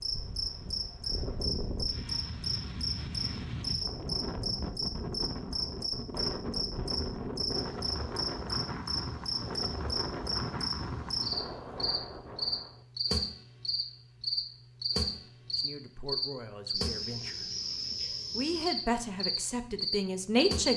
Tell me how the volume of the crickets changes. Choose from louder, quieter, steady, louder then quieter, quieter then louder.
steady.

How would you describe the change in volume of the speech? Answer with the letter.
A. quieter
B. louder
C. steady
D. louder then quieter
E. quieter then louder
B.